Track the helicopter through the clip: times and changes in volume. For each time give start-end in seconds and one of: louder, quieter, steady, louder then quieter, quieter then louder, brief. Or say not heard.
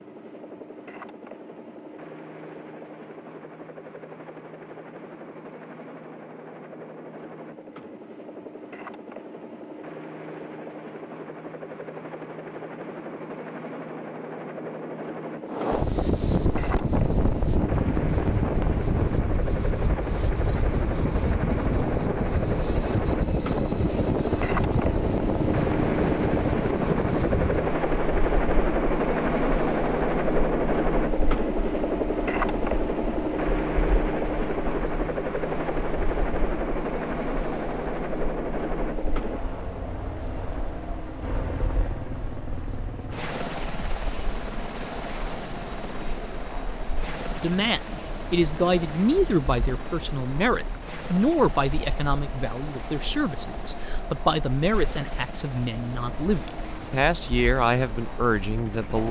0.0-59.0 louder then quieter.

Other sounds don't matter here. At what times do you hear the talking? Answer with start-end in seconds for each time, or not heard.
47.4-59.0.